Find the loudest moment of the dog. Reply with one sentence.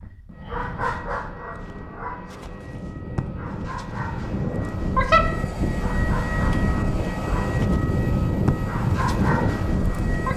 The loudest moment of the dog is at 5 seconds.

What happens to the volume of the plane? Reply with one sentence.
The volume of the plane goes up.